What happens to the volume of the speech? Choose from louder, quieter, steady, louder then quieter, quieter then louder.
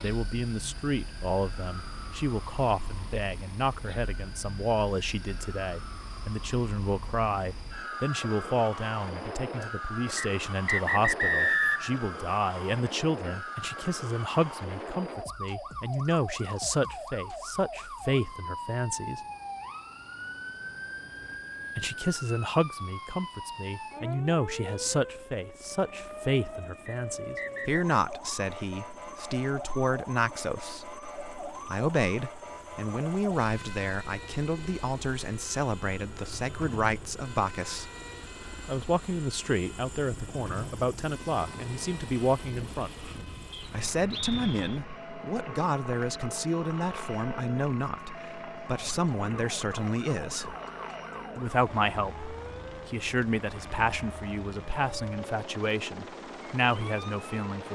steady.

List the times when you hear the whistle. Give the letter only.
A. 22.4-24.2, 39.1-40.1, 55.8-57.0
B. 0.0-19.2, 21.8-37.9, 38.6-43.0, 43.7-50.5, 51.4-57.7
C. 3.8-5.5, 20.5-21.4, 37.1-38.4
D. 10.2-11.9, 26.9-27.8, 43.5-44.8
D.